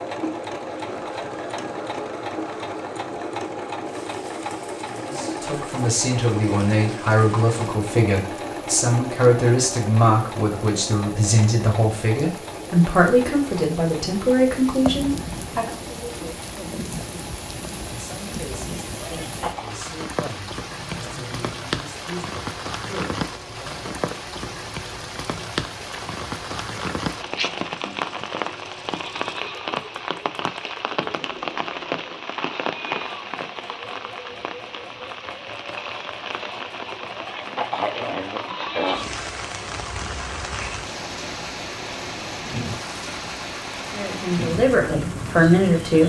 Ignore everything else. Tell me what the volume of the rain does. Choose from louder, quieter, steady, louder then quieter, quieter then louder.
louder.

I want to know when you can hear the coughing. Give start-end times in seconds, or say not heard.
19.0-19.8, 37.1-39.1.